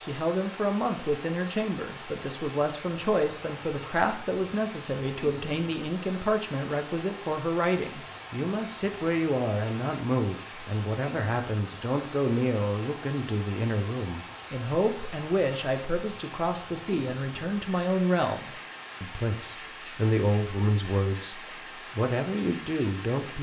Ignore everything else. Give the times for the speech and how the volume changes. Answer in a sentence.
You can hear the speech from 0.0 to 23.3 s, at a steady volume.